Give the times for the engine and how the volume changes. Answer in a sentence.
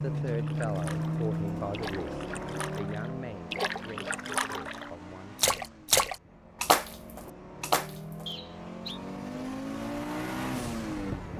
The engine can be heard from 0.0 to 11.3 s, getting quieter then louder.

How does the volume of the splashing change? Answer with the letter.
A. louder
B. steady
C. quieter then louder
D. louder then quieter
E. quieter
A.